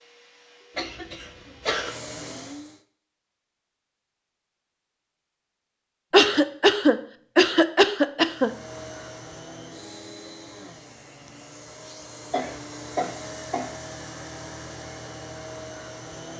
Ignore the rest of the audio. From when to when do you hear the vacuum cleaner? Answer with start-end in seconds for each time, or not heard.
0.0-2.9, 8.2-16.3.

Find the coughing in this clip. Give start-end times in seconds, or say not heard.
0.8-1.9, 6.1-8.5, 12.3-13.8.